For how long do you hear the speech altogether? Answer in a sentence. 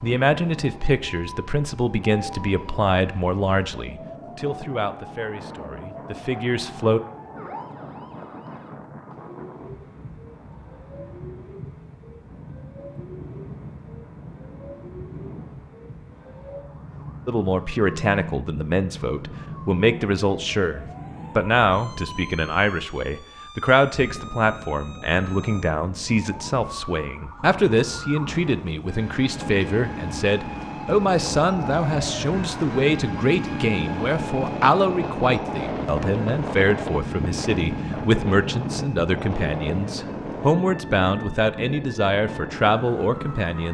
The speech can be heard for 33 seconds in total.